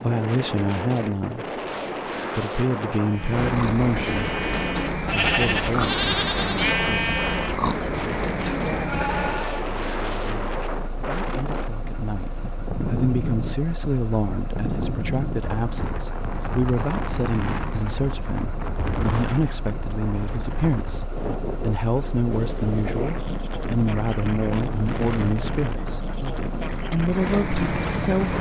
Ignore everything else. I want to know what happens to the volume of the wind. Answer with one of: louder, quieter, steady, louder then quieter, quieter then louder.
steady.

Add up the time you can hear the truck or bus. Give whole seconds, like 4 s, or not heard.
25 s.